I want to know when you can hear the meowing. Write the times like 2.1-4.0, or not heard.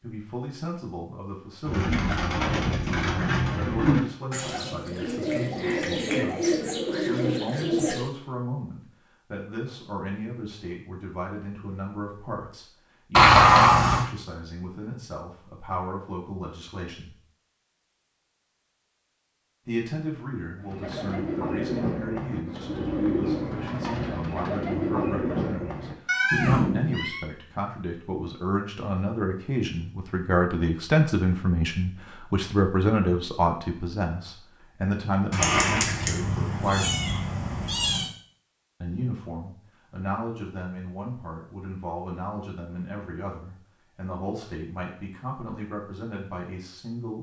13.2-14.1, 26.1-27.2, 35.3-38.0.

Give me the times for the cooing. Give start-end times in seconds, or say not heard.
1.6-8.1, 20.6-27.1.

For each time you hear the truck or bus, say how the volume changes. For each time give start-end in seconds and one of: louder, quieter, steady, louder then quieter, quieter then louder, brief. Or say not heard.
not heard.